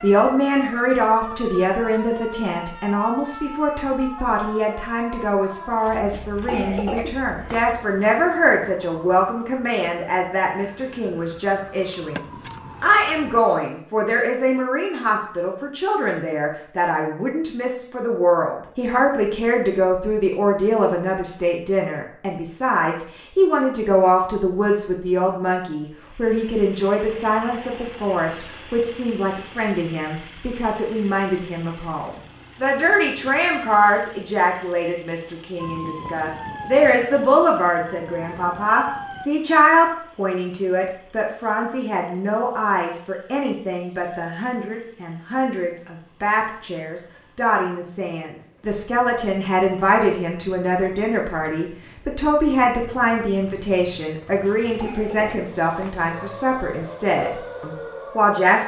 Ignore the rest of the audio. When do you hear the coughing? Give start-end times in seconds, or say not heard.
6.1-7.7, 54.5-56.0.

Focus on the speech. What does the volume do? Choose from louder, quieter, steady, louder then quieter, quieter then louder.
steady.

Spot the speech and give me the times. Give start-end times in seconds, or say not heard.
0.0-12.2, 12.8-58.6.